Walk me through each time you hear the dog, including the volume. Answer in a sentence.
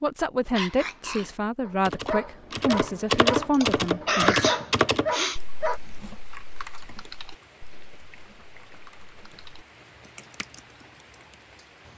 The dog can be heard from 0.5 to 5.8 s, getting louder.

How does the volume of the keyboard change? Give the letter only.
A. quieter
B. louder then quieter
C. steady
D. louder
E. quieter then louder
A.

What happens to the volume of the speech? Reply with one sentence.
The loudness of the speech stays about the same.